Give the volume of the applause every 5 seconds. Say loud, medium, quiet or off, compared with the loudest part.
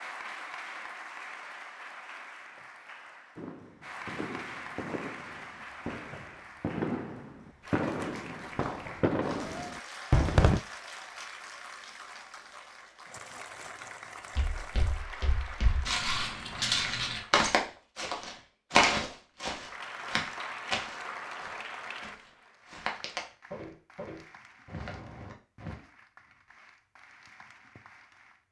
loud, loud, loud, loud, loud, quiet.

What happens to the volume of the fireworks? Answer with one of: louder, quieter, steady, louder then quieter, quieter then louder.
louder.